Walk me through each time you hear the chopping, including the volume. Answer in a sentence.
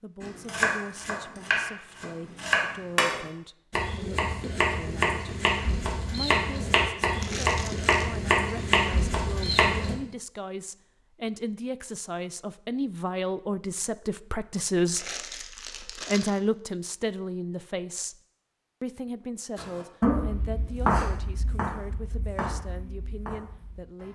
The chopping can be heard from 0.2 to 9.9 s, at a steady volume; and from 19.6 to 24.1 s, getting quieter.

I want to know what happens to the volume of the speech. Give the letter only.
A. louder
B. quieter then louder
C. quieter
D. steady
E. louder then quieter
E.